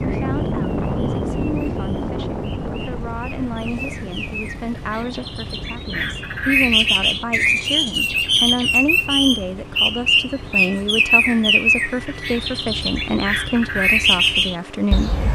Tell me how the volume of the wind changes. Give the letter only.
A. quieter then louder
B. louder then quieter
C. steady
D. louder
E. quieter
E.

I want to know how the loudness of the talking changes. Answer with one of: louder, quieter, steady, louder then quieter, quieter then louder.
louder.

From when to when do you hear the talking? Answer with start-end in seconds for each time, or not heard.
0.0-15.2.